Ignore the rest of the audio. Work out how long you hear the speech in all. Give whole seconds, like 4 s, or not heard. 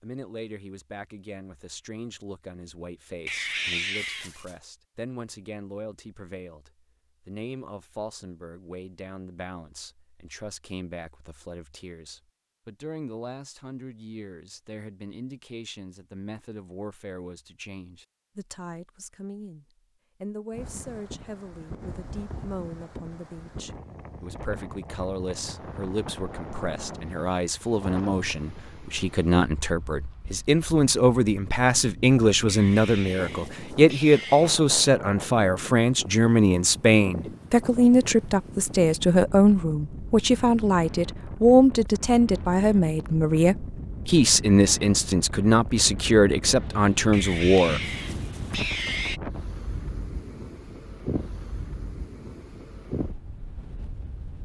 48 s.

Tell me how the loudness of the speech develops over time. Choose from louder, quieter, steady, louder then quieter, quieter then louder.
louder.